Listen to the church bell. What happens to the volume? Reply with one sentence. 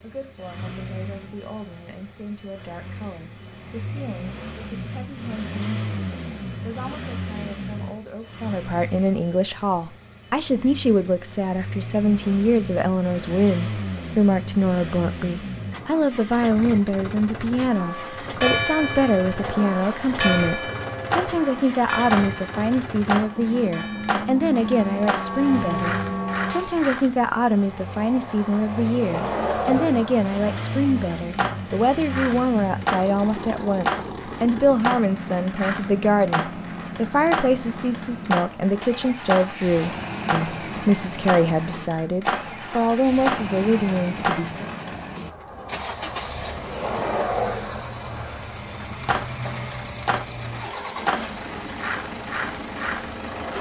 The volume of the church bell goes down, then up.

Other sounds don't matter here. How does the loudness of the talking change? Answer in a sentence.
The volume of the talking goes up.